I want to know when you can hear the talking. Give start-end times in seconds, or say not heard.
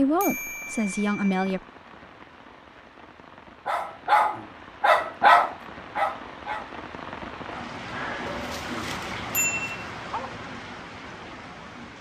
0.0-1.6.